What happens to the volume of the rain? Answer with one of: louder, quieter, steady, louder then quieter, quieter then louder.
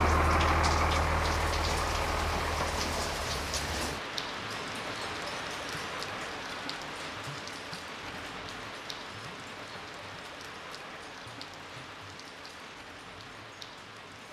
quieter.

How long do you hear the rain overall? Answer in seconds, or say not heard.
14 s.